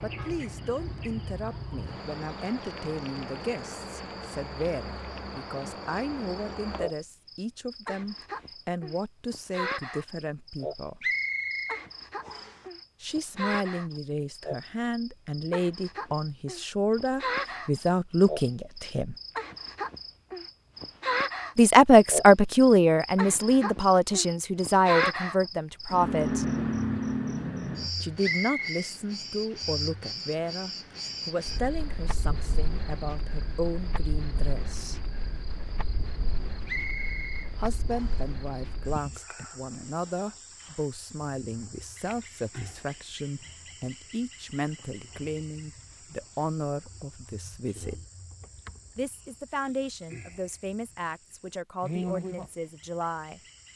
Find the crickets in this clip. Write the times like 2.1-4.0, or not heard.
0.0-53.7.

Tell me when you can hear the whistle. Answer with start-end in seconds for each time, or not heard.
11.0-12.6, 28.2-28.9, 36.6-38.2.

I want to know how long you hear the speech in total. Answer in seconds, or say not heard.
44 s.